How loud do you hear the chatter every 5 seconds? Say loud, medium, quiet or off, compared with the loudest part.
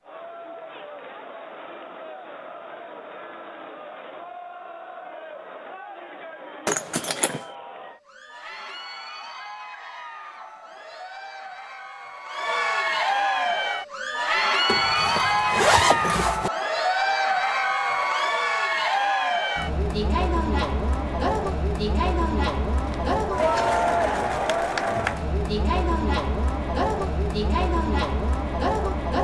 quiet, quiet, loud, loud, loud, loud.